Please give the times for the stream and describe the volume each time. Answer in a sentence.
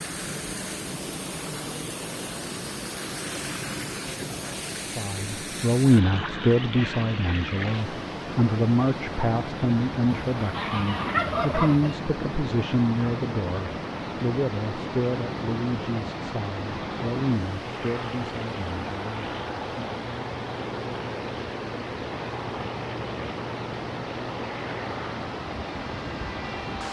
The stream can be heard from 0.0 to 26.8 s, at a steady volume.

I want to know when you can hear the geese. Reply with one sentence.
You can hear the geese from 10.3 to 11.9 s.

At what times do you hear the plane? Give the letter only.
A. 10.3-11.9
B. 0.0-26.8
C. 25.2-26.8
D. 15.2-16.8
B.